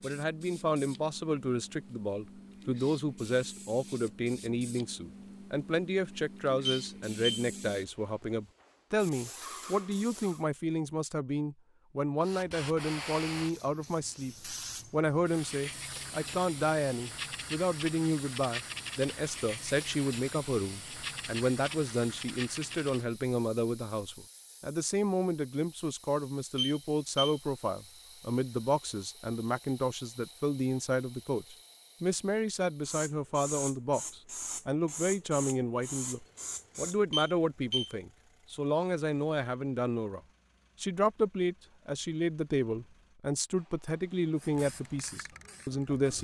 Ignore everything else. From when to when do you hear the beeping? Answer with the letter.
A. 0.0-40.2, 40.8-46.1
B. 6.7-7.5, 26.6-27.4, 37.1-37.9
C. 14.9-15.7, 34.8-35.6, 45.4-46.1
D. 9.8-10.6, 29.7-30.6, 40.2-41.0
B.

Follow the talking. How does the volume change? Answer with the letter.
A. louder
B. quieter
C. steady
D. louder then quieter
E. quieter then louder
C.